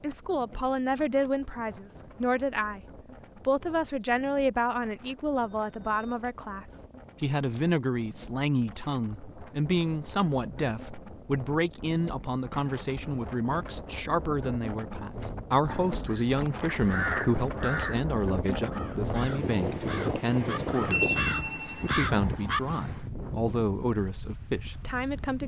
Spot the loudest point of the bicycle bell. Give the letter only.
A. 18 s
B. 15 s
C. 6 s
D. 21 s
D.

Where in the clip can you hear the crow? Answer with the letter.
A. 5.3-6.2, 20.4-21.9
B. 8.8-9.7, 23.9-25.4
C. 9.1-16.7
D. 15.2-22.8
D.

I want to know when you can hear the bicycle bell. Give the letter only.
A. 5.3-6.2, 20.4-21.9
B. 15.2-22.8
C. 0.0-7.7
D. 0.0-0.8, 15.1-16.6
A.